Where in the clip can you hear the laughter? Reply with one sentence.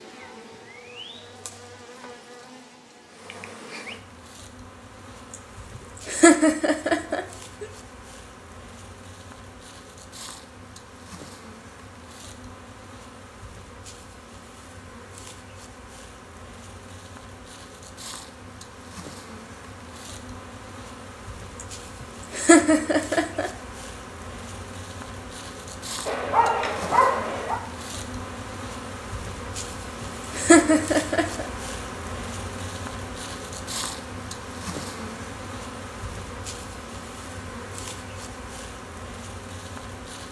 The laughter can be heard from 6.0 to 7.7 s, from 22.3 to 23.5 s and from 30.4 to 31.4 s.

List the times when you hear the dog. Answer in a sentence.
You can hear the dog from 26.1 to 27.6 s.